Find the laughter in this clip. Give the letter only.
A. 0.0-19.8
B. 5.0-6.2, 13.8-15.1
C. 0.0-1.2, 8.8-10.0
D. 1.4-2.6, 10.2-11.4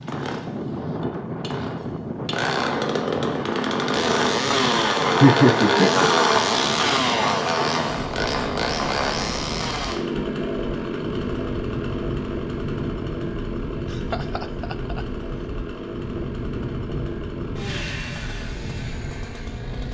B.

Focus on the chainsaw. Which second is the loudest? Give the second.
6 s.